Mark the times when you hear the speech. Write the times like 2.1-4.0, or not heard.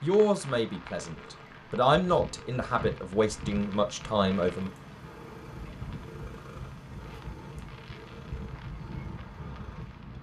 0.0-4.7.